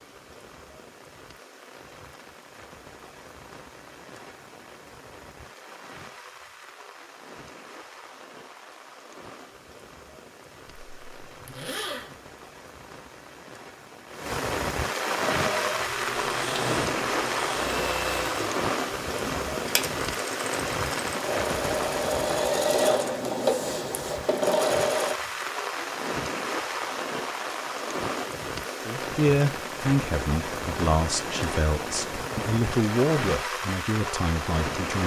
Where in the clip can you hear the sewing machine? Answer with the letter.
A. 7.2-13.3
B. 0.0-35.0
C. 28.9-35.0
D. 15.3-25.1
D.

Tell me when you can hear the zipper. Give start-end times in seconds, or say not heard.
10.7-12.2.